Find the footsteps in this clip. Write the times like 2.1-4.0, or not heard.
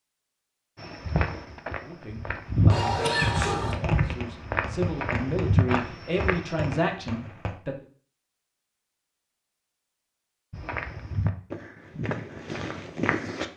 0.8-6.7, 10.5-13.5.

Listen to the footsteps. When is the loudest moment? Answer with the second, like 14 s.
3 s.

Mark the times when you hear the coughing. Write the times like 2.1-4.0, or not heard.
2.7-3.8.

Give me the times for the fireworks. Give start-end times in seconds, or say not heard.
2.4-7.5.